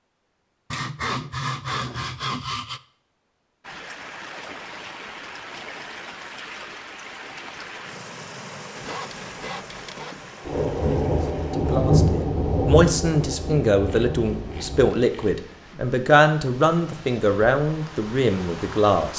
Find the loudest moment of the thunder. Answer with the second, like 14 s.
12 s.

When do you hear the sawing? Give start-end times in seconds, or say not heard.
0.7-2.8, 8.8-10.3, 13.8-15.3.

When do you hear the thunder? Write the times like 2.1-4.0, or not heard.
10.4-14.9.